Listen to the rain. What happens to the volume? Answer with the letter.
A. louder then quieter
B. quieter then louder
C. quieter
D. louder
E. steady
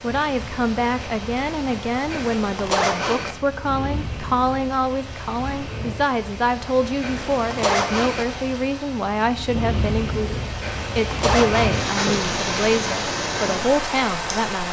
D.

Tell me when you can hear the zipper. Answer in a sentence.
You can hear the zipper from 2.1 to 3.4 s, from 7.0 to 8.2 s and from 10.6 to 11.8 s.